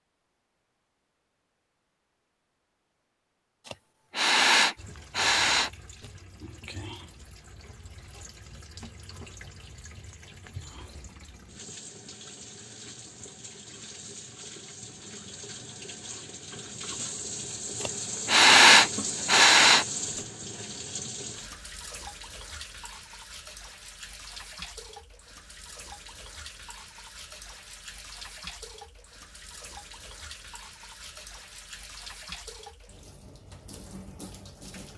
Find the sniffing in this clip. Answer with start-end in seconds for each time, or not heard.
3.6-5.7, 17.8-19.9.